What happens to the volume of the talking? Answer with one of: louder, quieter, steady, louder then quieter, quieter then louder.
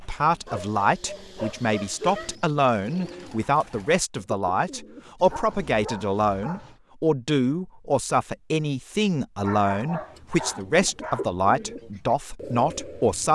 steady.